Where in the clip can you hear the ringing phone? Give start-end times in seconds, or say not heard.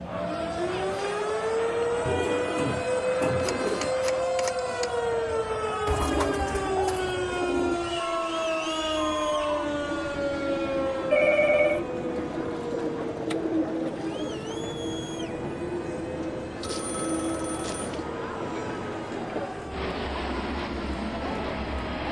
3.4-4.9, 11.1-11.8, 16.7-17.8.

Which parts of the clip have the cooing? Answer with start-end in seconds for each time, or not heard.
2.0-4.0, 5.8-7.8, 12.3-14.5, 16.6-18.1.